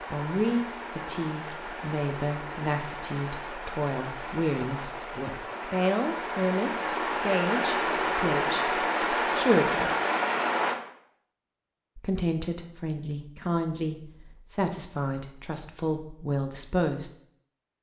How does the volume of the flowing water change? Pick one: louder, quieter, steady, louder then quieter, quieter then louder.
louder.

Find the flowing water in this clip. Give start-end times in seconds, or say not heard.
0.0-10.8.